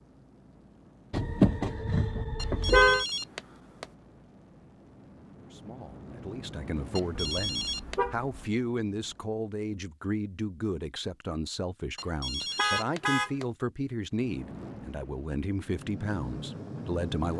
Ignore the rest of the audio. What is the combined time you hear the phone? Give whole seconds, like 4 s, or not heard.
4 s.